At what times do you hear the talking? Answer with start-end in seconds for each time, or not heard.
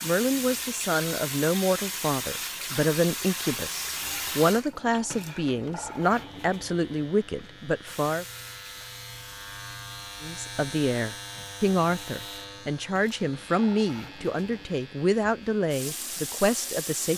0.0-8.2, 10.2-17.1.